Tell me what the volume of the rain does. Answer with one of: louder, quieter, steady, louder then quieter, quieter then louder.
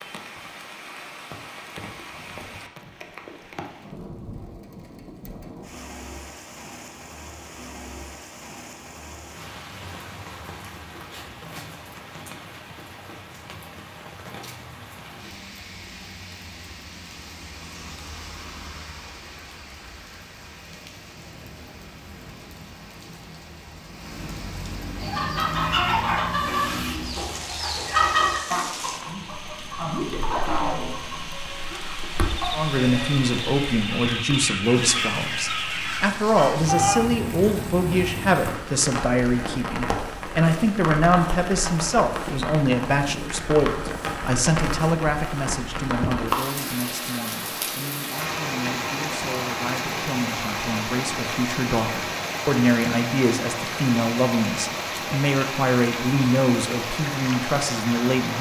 louder.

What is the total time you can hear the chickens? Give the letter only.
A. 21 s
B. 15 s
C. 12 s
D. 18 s
C.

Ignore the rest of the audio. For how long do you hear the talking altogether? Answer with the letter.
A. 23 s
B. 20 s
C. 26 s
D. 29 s
C.